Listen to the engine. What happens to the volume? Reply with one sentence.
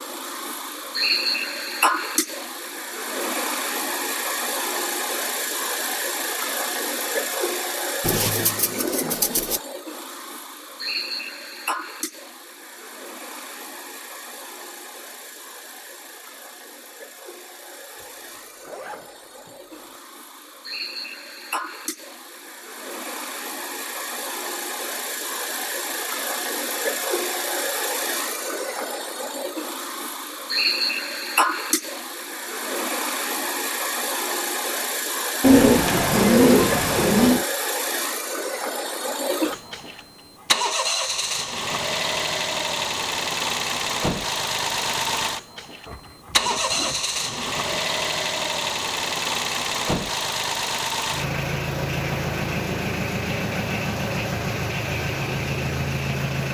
The volume of the engine goes down, then up.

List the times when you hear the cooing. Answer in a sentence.
The cooing can be heard from 8.0 to 9.6 s and from 35.4 to 37.5 s.